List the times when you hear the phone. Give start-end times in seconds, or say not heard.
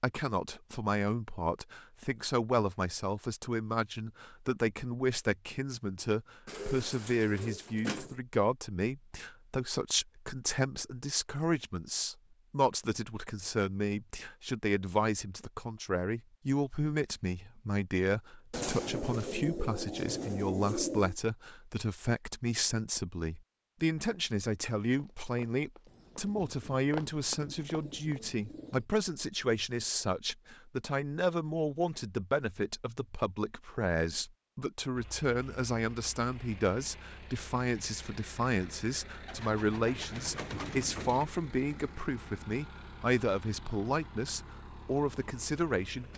not heard.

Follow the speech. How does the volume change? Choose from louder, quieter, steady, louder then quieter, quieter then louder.
steady.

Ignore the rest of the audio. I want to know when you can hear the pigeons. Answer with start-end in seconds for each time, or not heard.
6.5-8.2, 18.5-21.1, 25.9-28.9, 39.2-41.3.